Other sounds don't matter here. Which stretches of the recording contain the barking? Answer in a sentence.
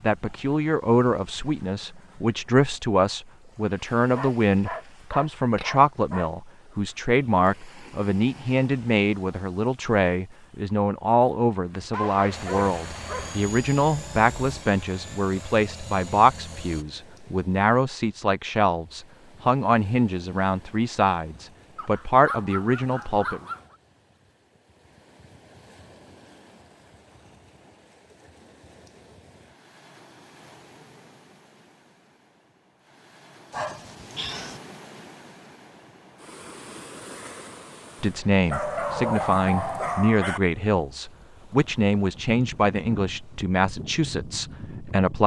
You can hear the barking from 4.2 to 6.3 s, from 11.9 to 13.6 s, from 21.8 to 23.8 s, from 33.5 to 34.6 s and from 38.5 to 40.4 s.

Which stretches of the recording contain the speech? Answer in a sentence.
The speech can be heard from 0.0 to 23.4 s and from 38.0 to 45.2 s.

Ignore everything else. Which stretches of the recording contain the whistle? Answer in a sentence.
The whistle can't be heard in this clip.